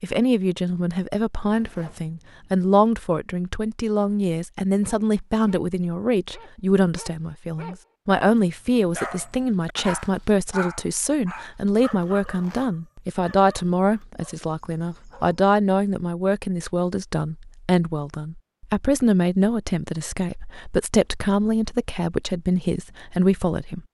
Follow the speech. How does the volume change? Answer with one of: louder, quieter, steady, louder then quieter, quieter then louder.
steady.